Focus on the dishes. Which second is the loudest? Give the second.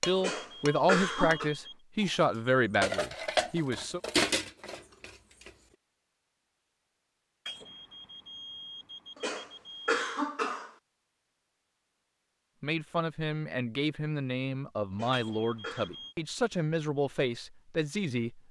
4 s.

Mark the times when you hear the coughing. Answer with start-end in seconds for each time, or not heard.
0.2-1.5, 9.2-10.7, 14.9-15.9.